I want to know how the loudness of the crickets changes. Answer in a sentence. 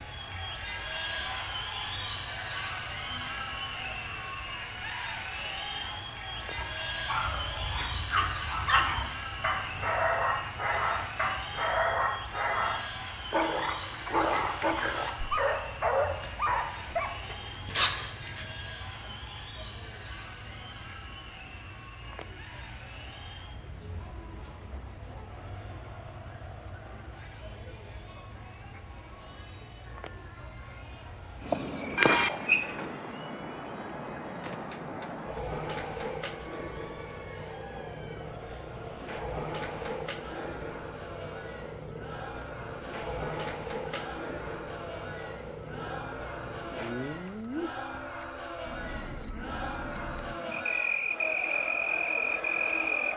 The volume of the crickets goes up.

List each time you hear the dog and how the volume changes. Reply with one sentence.
The dog can be heard from 6.5 to 18.4 s, at a steady volume.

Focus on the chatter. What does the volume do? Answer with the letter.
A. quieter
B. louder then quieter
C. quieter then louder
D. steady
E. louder
C.